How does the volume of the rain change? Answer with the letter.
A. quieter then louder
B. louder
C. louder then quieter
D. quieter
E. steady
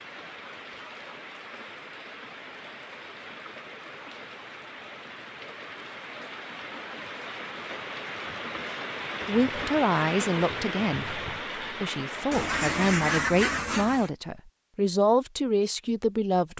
B.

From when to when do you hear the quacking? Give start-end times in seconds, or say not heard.
12.3-14.1.